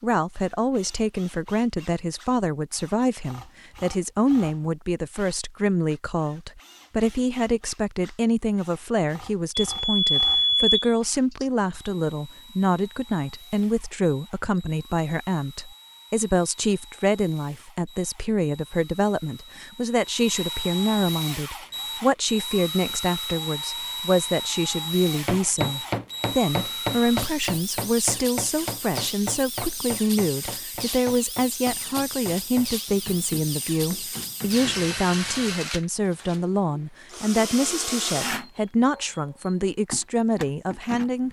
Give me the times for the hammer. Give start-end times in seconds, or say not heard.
25.2-35.0.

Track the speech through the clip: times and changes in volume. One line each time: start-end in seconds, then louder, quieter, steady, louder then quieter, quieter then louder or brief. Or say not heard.
0.0-41.2 steady.